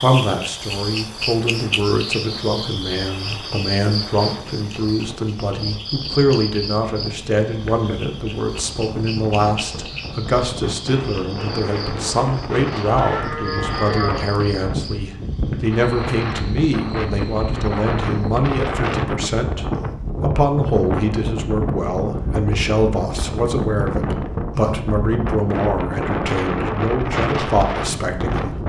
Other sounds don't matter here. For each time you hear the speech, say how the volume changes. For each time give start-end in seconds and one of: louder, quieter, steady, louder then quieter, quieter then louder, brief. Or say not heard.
0.0-28.6 steady.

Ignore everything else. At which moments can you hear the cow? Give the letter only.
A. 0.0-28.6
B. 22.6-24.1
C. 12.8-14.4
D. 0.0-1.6
C.